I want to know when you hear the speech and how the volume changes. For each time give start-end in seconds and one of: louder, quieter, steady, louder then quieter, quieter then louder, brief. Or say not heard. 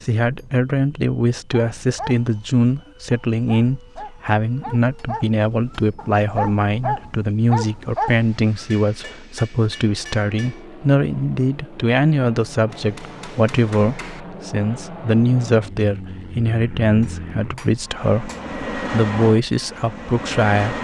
0.0-20.7 steady.